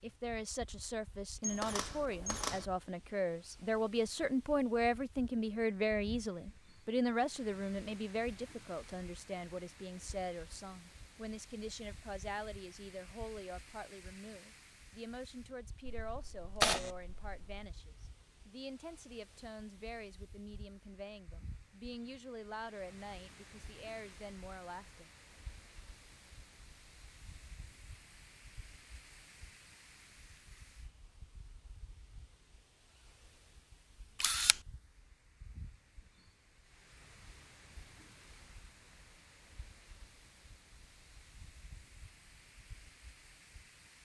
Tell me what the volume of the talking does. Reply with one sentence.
The loudness of the talking goes down.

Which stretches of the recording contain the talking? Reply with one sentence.
You can hear the talking from 0.0 to 25.1 s.